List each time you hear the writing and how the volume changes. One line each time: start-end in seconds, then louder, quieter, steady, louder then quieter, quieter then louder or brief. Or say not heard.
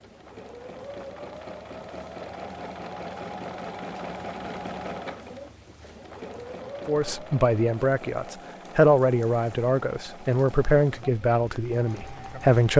not heard.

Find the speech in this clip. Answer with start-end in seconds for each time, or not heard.
6.8-12.7.